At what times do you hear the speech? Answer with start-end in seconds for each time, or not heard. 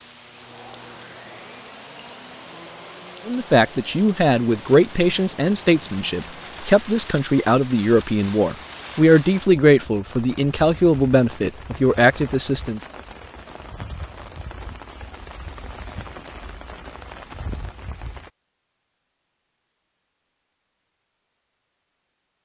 3.2-12.8.